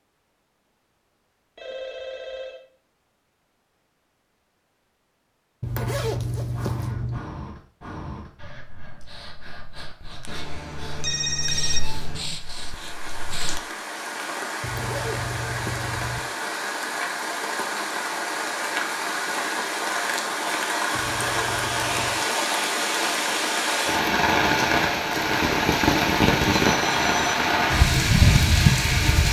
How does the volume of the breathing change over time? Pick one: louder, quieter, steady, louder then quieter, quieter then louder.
quieter then louder.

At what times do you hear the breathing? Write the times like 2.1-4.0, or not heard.
6.5-13.6.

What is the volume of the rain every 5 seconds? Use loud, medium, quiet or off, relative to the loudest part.
off, off, quiet, medium, loud, loud.